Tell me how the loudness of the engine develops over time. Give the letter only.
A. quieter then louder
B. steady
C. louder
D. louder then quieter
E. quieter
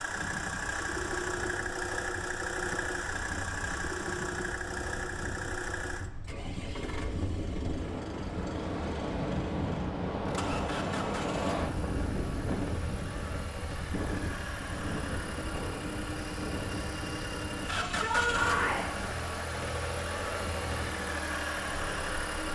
A.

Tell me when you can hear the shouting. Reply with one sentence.
The shouting can be heard from 17.8 to 18.9 s.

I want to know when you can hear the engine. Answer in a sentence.
The engine can be heard from 0.0 to 22.5 s.